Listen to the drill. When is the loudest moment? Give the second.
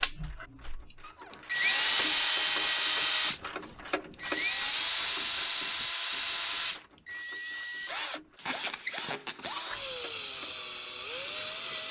2 s.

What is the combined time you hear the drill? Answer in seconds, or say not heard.
12 s.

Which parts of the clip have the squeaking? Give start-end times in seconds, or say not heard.
1.0-2.1, 8.3-9.8.